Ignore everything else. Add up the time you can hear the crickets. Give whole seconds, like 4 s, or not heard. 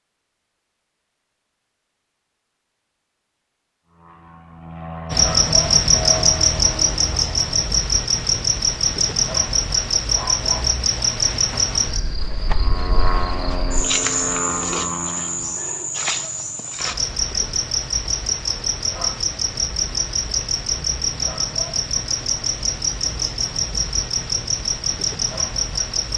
21 s.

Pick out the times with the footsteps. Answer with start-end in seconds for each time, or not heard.
not heard.